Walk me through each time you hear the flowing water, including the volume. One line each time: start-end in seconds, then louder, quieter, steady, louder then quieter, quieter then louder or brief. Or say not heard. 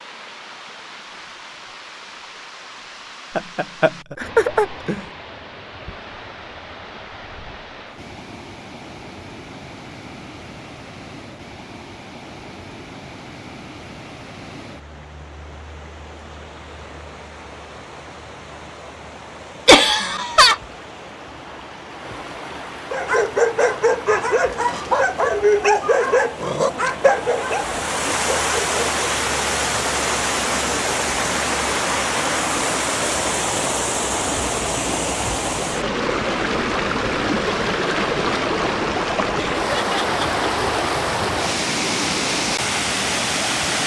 0.0-43.8 louder.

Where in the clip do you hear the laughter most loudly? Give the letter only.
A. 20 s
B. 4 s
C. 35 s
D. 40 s
A.